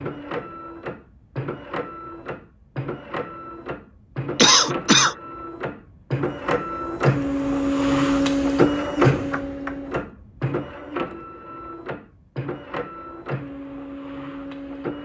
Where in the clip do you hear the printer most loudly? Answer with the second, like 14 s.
9 s.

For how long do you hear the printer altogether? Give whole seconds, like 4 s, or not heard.
15 s.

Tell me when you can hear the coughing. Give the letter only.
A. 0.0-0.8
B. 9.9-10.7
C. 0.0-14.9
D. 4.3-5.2
D.